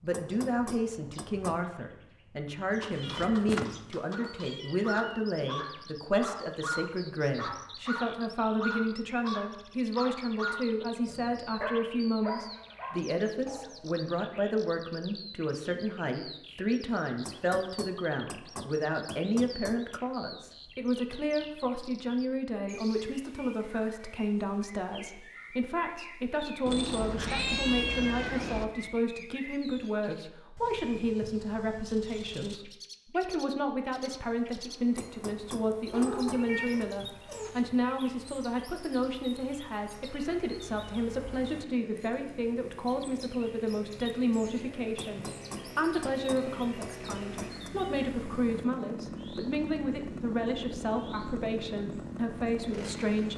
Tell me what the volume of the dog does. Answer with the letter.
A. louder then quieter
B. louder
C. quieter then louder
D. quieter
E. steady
E.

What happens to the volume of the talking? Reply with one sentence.
The loudness of the talking stays about the same.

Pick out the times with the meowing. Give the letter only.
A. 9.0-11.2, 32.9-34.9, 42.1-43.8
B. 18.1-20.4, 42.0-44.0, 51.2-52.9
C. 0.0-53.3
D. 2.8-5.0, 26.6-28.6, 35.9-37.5
D.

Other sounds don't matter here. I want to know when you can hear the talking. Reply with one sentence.
The talking can be heard from 0.0 to 53.3 s.